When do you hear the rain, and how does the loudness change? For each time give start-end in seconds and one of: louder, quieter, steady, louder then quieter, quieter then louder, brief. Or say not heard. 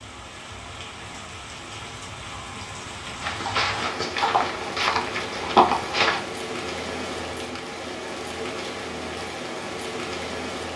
0.0-10.7 louder.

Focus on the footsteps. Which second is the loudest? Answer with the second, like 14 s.
6 s.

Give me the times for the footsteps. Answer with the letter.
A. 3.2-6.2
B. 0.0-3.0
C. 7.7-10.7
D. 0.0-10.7
A.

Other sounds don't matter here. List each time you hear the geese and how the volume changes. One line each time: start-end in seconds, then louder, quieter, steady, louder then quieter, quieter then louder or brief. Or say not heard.
not heard.